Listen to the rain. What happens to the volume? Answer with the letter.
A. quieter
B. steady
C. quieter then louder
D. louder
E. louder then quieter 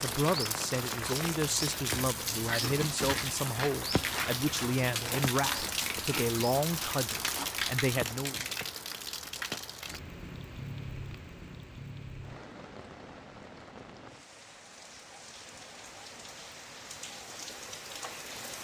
A.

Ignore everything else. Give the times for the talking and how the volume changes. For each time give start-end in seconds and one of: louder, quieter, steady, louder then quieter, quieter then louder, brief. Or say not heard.
0.0-8.4 steady.